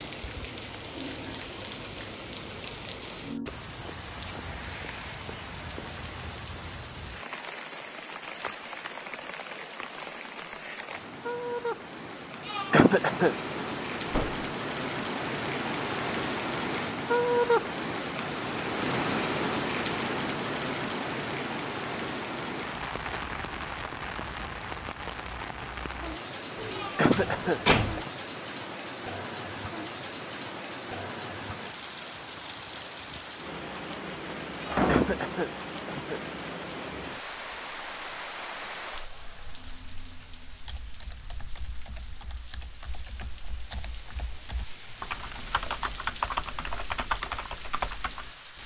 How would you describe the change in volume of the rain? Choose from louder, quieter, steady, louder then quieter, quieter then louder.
louder then quieter.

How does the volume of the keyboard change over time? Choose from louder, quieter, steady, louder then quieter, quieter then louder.
louder.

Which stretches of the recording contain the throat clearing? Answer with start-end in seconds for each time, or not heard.
12.4-13.3, 26.7-28.1, 34.6-36.2.